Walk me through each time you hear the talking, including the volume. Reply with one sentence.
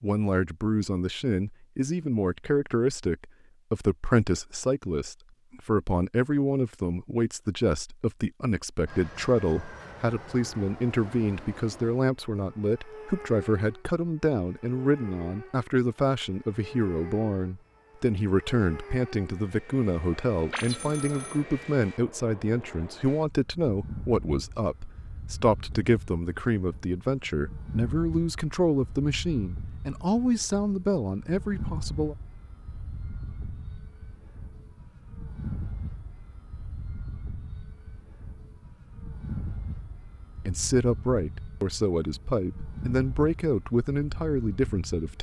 You can hear the talking from 0.0 to 32.1 s, at a steady volume; and from 40.5 to 45.1 s, at a steady volume.